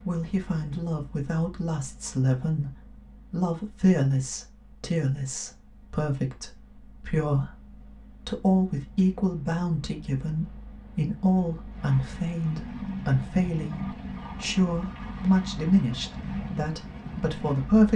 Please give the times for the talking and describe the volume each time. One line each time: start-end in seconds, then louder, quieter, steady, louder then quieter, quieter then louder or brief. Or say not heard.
0.0-17.9 steady.